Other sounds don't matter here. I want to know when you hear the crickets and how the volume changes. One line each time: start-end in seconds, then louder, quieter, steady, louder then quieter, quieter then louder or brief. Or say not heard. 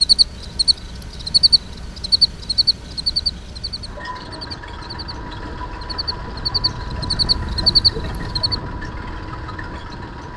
0.0-8.6 quieter then louder.